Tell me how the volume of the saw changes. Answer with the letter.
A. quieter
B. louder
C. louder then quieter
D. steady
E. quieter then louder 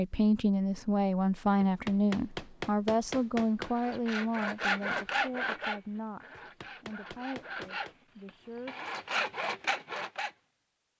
E.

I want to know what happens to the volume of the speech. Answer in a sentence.
The loudness of the speech goes down.